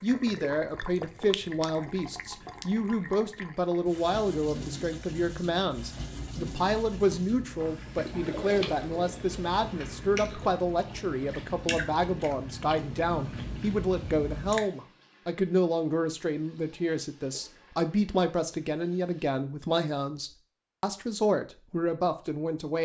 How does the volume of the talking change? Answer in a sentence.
The volume of the talking stays about the same.